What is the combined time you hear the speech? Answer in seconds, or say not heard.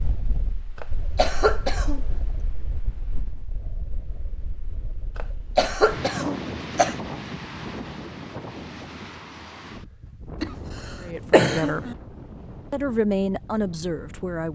3 s.